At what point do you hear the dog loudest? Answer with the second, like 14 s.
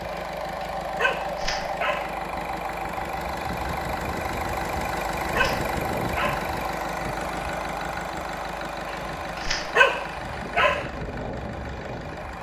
10 s.